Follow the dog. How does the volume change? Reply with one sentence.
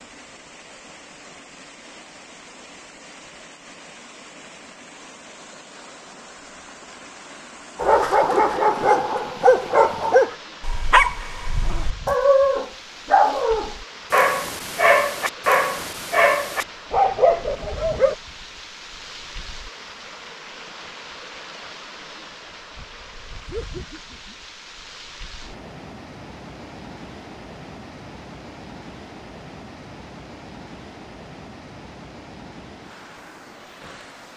The loudness of the dog stays about the same.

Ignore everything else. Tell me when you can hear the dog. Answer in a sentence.
You can hear the dog from 7.8 to 18.1 s.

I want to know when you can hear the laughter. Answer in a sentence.
The laughter can be heard from 23.4 to 24.4 s.